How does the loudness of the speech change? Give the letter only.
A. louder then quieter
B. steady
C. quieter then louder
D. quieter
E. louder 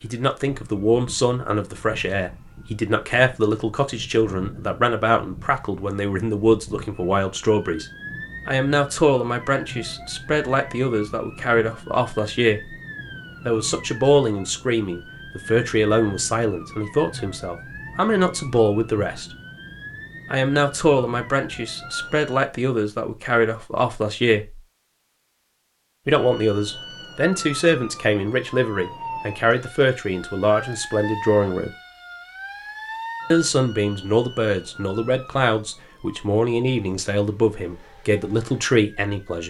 B.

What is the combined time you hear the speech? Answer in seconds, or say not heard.
34 s.